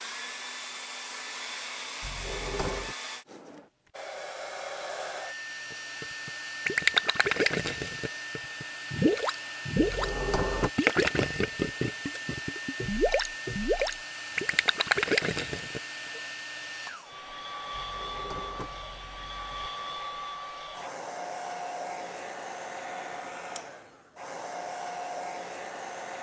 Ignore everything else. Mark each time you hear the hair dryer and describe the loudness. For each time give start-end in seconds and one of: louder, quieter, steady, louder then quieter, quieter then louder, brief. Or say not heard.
0.0-26.1 steady.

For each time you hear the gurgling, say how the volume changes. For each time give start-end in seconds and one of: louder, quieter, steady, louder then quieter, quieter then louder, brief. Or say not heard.
5.7-10.1 quieter then louder
10.8-15.8 quieter then louder.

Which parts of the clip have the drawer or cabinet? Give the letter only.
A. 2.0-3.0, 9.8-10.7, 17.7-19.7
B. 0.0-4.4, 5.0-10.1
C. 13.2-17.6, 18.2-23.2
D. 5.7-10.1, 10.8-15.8
A.